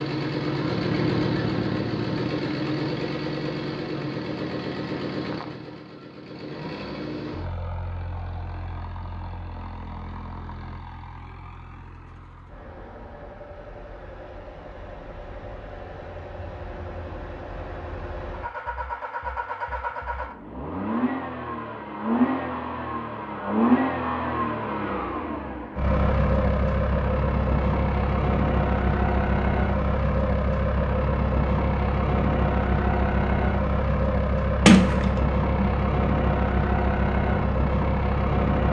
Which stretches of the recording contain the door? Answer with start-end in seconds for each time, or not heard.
34.6-35.8.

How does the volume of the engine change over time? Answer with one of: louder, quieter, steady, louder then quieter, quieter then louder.
quieter then louder.